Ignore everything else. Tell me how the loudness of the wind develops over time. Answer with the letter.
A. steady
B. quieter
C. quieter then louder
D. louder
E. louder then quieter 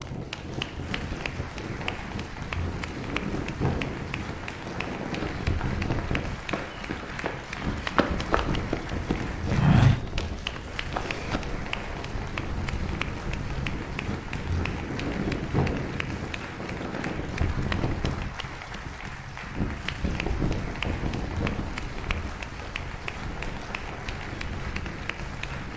A.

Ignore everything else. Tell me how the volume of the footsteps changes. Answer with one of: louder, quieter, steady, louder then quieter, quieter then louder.
louder then quieter.